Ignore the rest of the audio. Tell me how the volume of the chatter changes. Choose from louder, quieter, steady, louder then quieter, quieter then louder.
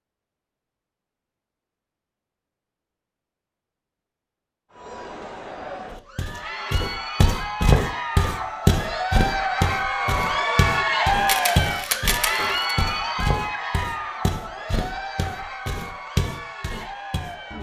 louder then quieter.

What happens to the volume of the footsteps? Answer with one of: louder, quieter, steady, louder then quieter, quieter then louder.
quieter.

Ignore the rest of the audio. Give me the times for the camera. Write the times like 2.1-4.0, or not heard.
11.2-12.8.